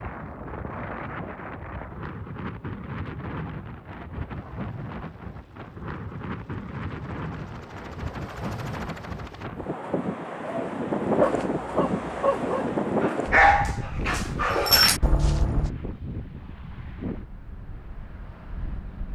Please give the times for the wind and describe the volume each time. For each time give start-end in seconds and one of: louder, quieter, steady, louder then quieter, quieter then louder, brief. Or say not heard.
0.0-19.1 louder then quieter.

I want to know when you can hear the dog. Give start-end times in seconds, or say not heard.
10.4-15.7.